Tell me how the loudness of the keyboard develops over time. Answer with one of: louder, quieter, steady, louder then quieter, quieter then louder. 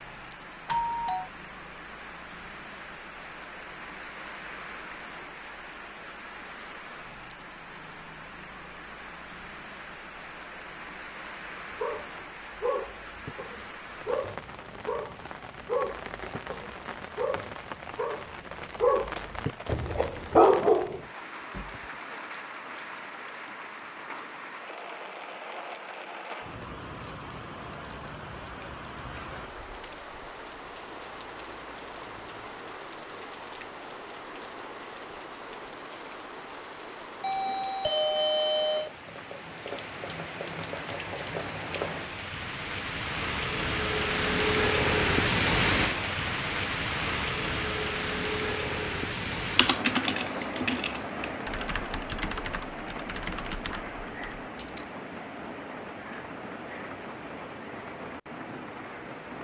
quieter.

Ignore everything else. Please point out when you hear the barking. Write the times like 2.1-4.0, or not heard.
11.8-21.9.